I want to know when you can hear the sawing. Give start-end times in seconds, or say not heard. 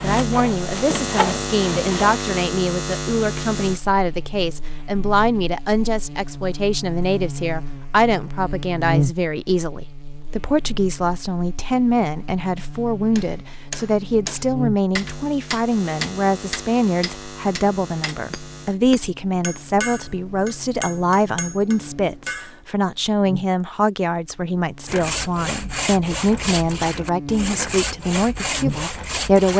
0.0-2.2, 24.9-29.5.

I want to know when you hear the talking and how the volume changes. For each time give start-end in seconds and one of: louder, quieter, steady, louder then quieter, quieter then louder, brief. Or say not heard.
0.0-29.5 steady.